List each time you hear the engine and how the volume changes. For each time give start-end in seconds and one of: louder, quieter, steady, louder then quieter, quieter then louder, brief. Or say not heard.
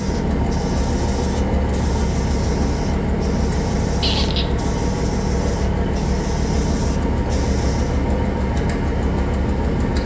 0.0-10.0 steady.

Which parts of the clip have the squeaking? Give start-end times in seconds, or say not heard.
4.0-4.5.